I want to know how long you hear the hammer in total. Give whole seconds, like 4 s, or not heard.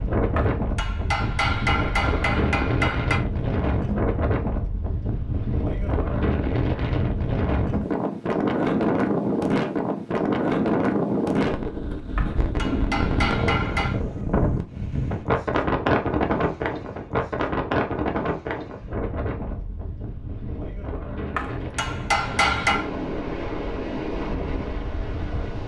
6 s.